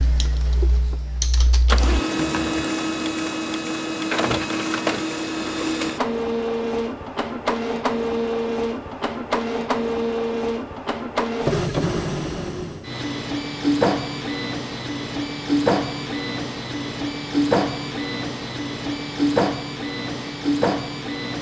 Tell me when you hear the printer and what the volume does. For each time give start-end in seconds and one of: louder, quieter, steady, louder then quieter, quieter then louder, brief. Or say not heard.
0.0-21.3 steady.